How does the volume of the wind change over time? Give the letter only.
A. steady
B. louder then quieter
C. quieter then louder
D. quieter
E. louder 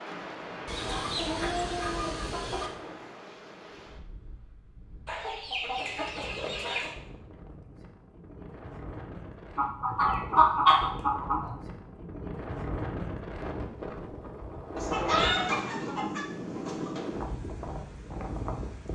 C.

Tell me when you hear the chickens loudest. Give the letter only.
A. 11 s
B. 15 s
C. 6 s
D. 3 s
A.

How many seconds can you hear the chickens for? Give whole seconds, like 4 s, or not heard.
8 s.